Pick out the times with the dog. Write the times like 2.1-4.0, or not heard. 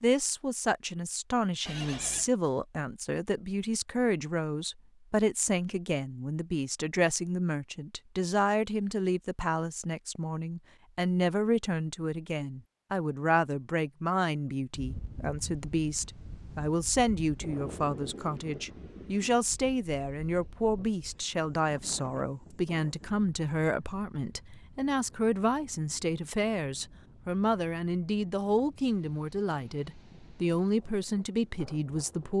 not heard.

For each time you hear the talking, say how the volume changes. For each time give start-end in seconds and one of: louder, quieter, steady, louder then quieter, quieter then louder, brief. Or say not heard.
0.0-32.3 steady.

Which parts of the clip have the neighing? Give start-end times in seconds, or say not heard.
1.6-2.3.